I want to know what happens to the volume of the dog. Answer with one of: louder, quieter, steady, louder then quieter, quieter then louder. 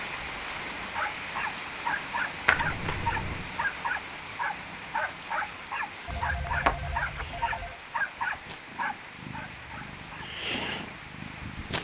steady.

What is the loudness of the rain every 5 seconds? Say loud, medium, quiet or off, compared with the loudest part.
loud, medium, medium.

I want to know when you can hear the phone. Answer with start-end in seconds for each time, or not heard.
2.5-3.5, 6.0-7.8.